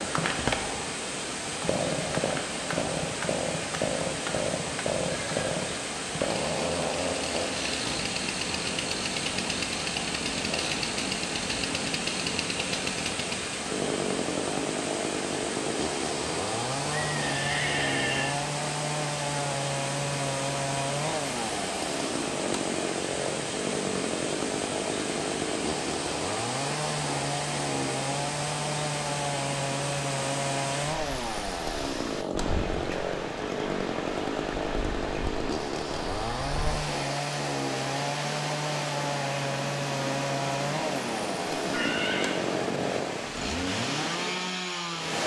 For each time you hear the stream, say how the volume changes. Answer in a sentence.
The stream can be heard from 0.0 to 45.2 s, at a steady volume.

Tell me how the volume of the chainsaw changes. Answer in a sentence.
The loudness of the chainsaw stays about the same.